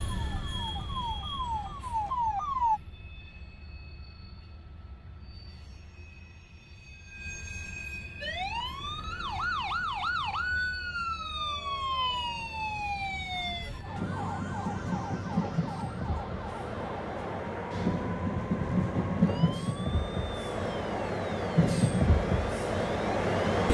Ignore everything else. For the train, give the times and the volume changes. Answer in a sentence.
The train can be heard from 0.0 to 23.7 s, getting louder.